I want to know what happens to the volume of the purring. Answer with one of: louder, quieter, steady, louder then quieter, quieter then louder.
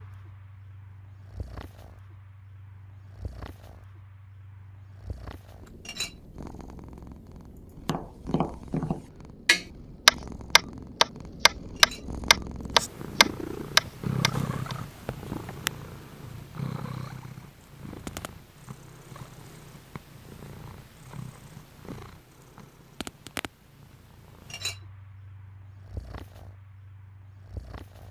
louder then quieter.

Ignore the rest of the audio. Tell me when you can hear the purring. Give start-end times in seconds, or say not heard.
0.0-28.0.